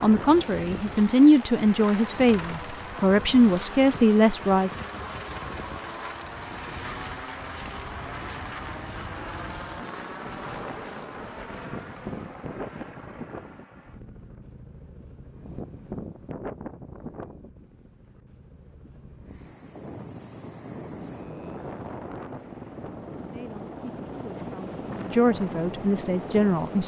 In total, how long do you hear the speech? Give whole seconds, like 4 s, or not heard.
8 s.